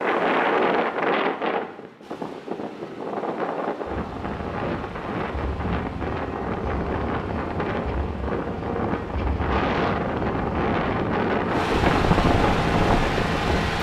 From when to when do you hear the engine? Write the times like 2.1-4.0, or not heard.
0.0-13.7.